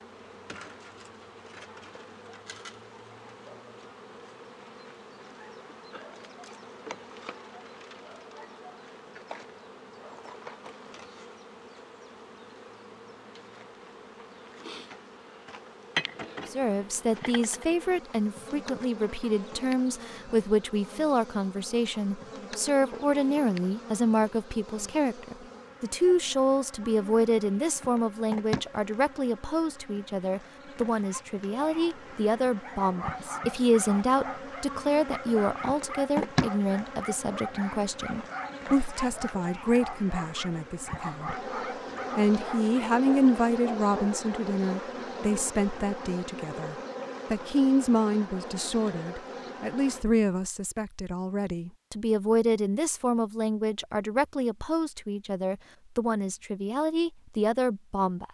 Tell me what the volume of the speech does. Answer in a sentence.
The loudness of the speech stays about the same.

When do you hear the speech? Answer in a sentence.
The speech can be heard from 16.5 to 41.4 s and from 42.1 to 58.2 s.